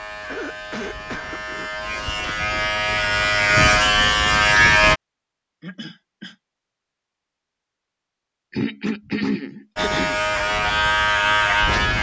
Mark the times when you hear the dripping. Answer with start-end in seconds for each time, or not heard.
not heard.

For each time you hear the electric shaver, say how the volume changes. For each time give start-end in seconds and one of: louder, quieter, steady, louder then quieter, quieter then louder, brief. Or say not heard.
0.0-5.0 louder
9.8-11.9 brief.